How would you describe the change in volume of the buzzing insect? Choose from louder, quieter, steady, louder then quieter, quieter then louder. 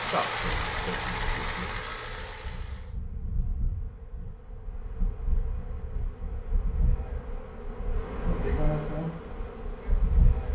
louder.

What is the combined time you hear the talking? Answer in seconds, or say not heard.
2 s.